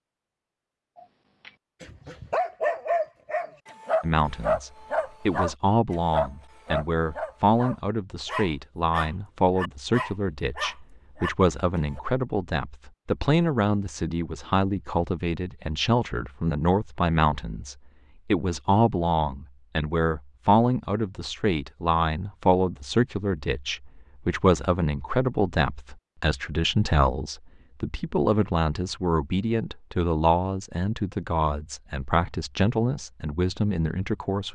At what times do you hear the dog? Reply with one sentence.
You can hear the dog from 1.4 to 12.0 s.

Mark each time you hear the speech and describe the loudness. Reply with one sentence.
The speech can be heard from 4.0 to 34.4 s, at a steady volume.